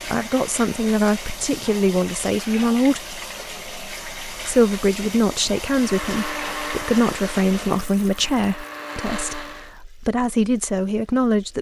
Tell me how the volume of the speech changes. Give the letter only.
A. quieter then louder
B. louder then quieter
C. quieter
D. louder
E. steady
E.